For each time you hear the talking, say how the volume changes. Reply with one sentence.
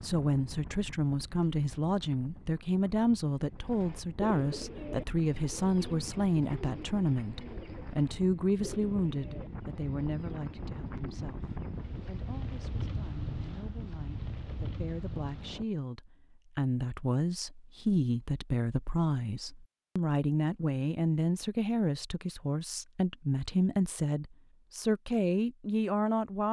The talking can be heard from 0.0 to 26.4 s, getting quieter then louder.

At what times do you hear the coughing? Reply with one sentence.
The coughing can't be heard in this clip.